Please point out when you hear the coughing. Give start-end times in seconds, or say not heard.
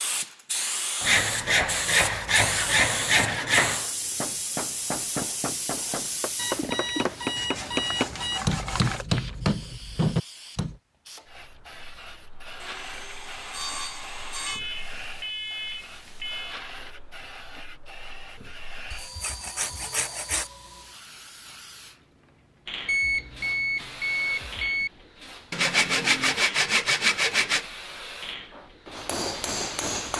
not heard.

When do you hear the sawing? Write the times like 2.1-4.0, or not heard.
1.0-3.9, 7.3-9.1, 12.6-14.6, 18.9-20.5, 25.5-27.6.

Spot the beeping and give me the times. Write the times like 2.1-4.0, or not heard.
6.3-8.4, 14.4-16.6, 22.9-24.9.